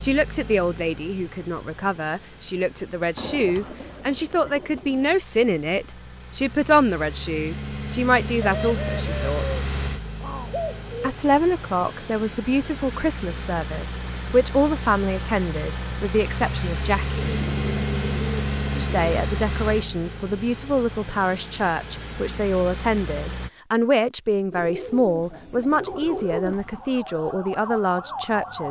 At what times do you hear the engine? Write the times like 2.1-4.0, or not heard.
0.0-23.5.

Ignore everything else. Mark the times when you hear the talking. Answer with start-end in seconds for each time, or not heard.
0.0-9.4, 11.0-17.4, 18.8-28.6.